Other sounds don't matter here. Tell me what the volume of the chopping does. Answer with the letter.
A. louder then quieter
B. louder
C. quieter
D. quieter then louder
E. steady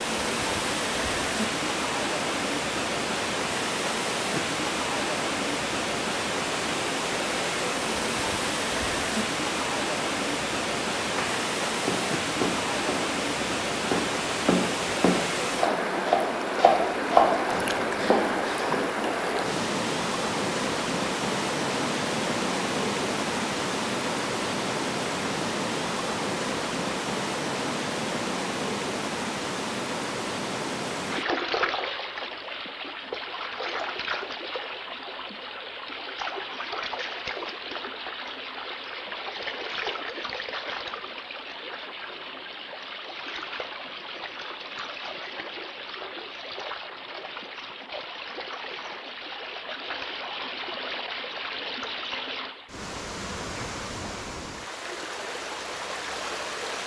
A.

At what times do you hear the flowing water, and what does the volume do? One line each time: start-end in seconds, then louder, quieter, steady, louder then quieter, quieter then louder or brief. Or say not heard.
0.0-56.8 quieter.